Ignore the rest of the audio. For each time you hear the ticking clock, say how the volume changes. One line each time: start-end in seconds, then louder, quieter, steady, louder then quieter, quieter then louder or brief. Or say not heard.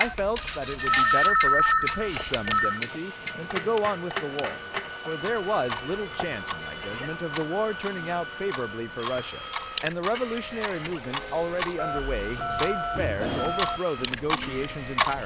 0.0-15.2 quieter then louder.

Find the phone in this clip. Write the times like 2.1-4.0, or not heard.
0.0-2.8, 5.8-7.2, 11.8-13.8.